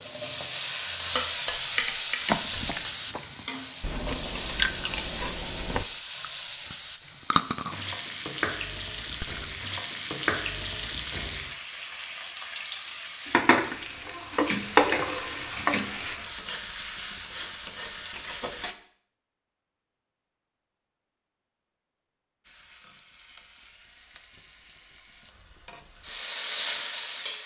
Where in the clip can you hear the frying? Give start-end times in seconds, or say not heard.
0.0-18.8, 22.4-27.4.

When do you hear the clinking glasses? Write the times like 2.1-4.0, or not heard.
1.0-2.9.